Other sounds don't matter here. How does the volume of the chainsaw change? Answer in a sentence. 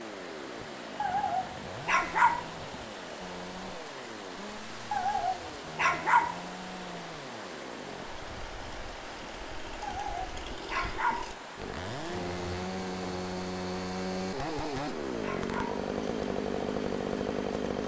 The loudness of the chainsaw goes up.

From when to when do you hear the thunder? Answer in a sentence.
The thunder can be heard from 11.9 to 13.2 s.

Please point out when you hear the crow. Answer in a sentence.
You can't hear the crow here.